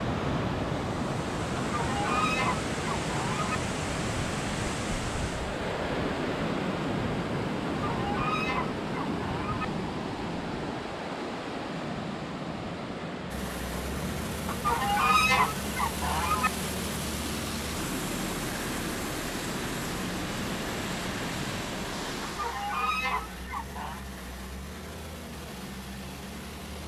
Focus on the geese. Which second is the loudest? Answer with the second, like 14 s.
15 s.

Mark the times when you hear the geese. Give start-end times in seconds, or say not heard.
1.6-3.6, 7.8-9.7, 14.4-16.5, 22.2-24.1.